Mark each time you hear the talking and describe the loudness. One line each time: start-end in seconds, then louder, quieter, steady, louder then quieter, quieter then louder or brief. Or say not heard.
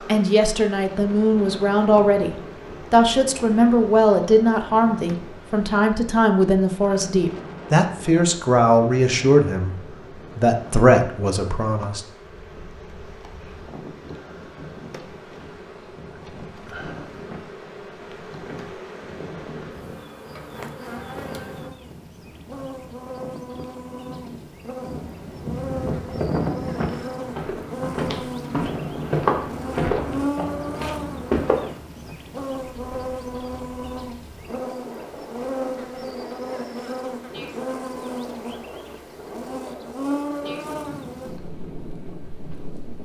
0.1-12.0 steady.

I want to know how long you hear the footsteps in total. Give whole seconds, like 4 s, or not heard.
6 s.